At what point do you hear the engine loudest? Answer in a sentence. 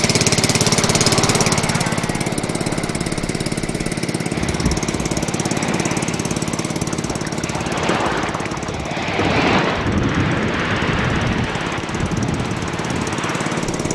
The loudest moment of the engine is at 1 second.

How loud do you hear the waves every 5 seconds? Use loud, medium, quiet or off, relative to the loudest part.
medium, loud, loud.